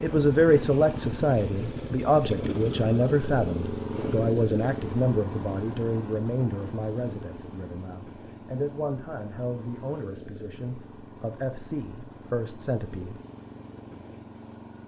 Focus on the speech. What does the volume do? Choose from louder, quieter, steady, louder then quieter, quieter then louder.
quieter.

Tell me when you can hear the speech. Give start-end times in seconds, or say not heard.
0.0-13.2.